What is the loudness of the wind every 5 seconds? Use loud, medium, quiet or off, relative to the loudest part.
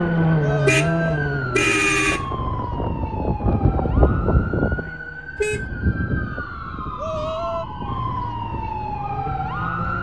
loud, medium.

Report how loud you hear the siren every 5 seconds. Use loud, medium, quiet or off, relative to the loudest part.
loud, medium.